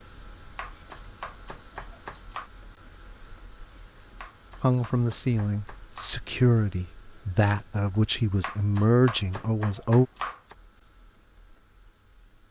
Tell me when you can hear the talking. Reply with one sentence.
You can hear the talking from 4.6 to 10.1 s.